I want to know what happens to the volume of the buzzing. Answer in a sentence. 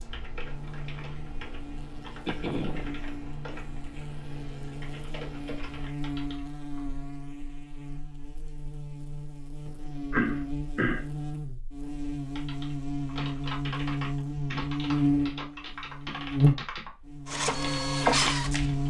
The volume of the buzzing goes up.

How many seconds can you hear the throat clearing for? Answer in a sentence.
You can hear the throat clearing for 2 seconds altogether.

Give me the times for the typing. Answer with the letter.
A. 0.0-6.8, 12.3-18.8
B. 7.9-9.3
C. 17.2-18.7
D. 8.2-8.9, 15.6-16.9
A.